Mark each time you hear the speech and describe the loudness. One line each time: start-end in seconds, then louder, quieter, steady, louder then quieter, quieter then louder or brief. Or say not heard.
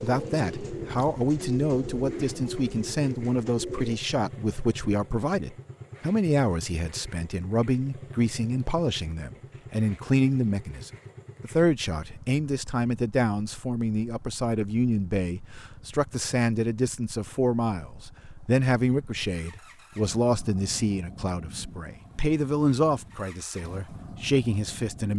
0.0-25.1 steady.